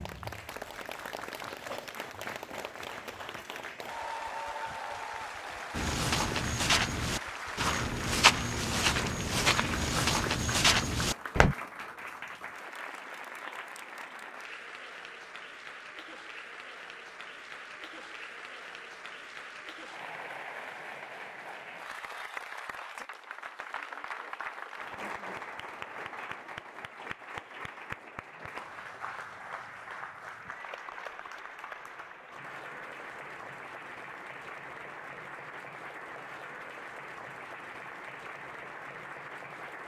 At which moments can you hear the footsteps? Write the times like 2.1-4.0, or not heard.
5.8-11.6.